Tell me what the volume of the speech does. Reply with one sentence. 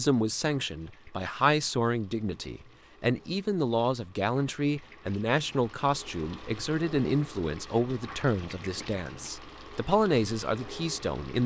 The loudness of the speech stays about the same.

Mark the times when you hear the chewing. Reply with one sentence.
The chewing can't be heard in this clip.